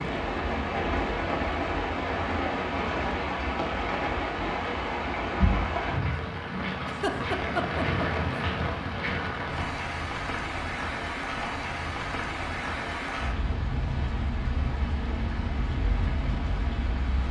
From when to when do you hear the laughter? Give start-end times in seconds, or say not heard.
6.8-8.1.